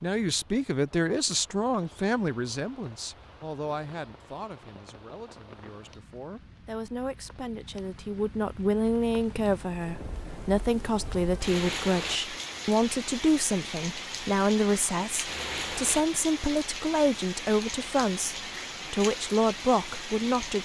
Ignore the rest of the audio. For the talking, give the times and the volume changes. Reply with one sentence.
The talking can be heard from 0.0 to 20.6 s, getting quieter then louder.